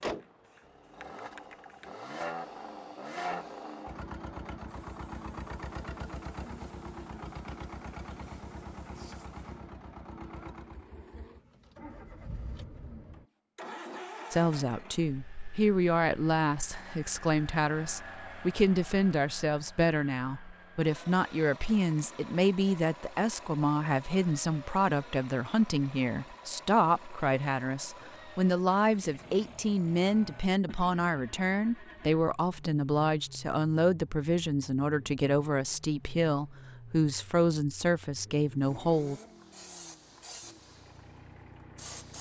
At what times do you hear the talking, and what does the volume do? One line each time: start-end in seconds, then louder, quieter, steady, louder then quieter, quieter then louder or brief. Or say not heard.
14.3-39.2 steady.